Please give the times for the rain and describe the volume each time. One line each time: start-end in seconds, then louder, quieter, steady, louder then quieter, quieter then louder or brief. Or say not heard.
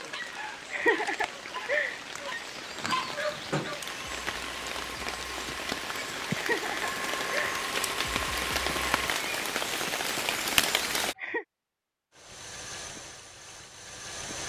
0.0-11.2 louder.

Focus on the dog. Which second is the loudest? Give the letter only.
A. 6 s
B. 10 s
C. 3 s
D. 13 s
C.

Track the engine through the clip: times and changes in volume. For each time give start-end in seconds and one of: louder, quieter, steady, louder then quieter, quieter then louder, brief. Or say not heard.
3.8-9.2 louder
12.1-14.4 brief.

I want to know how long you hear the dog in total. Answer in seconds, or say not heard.
4 s.